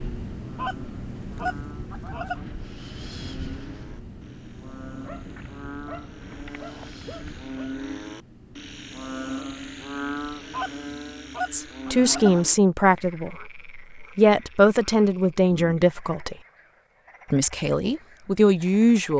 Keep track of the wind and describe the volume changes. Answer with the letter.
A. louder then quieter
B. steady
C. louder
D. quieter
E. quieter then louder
D.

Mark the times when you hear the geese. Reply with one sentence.
You can hear the geese from 0.6 to 2.5 s and from 10.5 to 12.4 s.